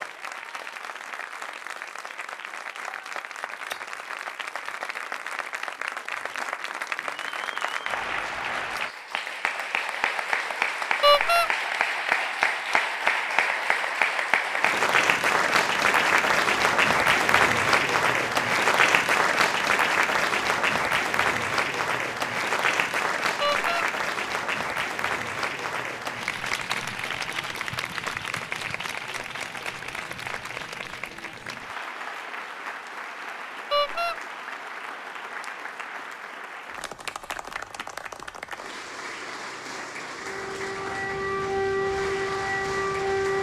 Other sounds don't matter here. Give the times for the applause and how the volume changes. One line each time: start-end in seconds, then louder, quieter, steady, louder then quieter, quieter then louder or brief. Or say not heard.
0.0-43.3 louder then quieter.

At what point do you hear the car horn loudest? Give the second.
11 s.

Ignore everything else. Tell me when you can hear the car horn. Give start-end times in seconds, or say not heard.
11.0-11.5, 23.4-23.9, 33.7-34.1.